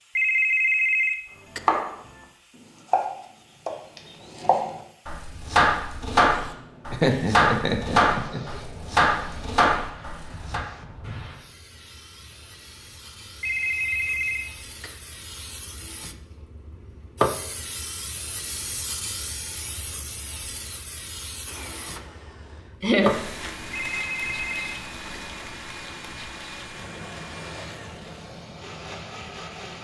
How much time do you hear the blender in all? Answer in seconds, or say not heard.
8 s.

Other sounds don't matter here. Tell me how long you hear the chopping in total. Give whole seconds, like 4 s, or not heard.
8 s.